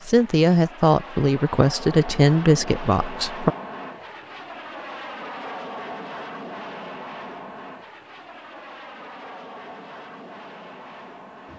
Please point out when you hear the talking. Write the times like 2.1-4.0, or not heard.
0.1-3.5.